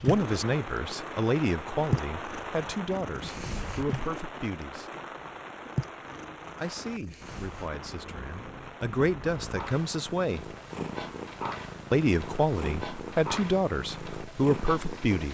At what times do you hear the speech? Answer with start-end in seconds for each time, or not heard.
0.0-4.8, 6.5-10.5, 11.9-15.3.